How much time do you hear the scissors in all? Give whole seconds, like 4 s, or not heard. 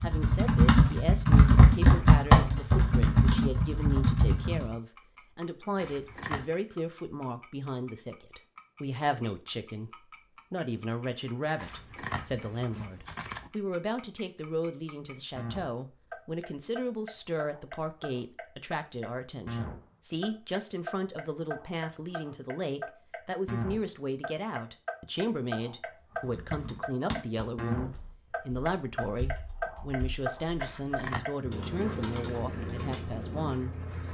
3 s.